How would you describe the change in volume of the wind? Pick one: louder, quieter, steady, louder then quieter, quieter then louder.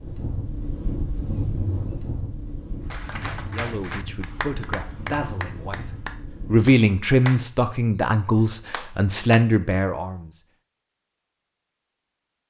quieter.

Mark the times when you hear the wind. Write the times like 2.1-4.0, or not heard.
0.0-6.7.